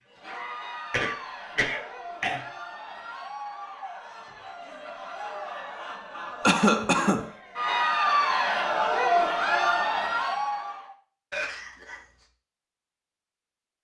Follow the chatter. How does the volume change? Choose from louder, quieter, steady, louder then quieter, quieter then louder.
louder.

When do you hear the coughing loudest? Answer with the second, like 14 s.
7 s.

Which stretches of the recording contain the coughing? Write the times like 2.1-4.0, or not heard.
0.9-2.5, 6.4-7.3, 11.3-12.0.